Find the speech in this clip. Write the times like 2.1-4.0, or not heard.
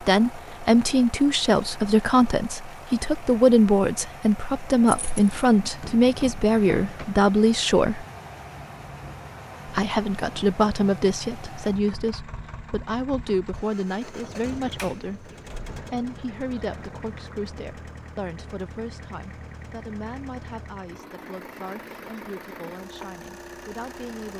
0.0-8.1, 9.7-24.3.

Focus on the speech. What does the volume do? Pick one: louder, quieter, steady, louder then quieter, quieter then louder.
quieter.